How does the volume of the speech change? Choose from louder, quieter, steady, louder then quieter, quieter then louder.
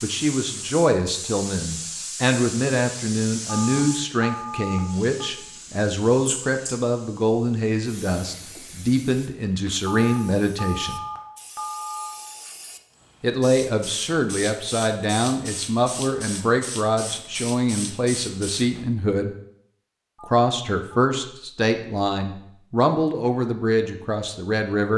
steady.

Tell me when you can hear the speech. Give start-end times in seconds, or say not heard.
0.0-11.0, 13.2-19.3, 20.2-24.9.